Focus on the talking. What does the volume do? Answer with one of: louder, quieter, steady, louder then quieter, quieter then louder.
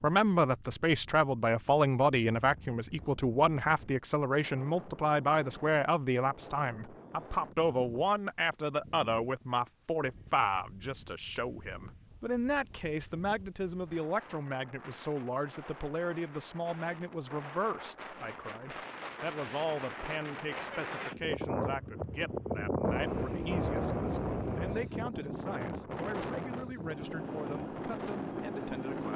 quieter.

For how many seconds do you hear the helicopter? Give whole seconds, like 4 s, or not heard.
2 s.